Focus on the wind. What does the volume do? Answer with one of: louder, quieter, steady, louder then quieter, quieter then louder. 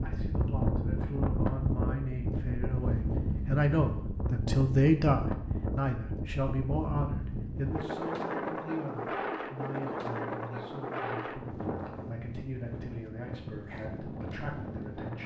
quieter.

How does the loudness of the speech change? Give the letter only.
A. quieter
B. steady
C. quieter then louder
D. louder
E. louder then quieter
E.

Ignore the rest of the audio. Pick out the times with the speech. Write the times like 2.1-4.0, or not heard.
0.0-15.2.